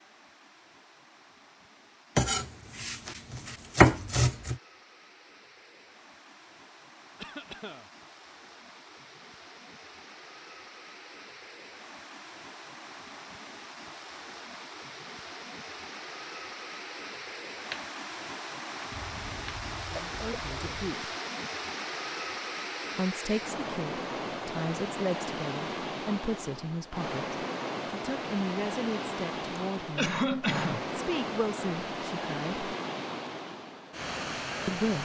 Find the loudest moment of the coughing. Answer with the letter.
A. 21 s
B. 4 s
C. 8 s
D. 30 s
D.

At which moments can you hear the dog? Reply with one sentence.
The dog can't be heard in this clip.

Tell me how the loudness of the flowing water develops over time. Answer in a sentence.
The volume of the flowing water goes up.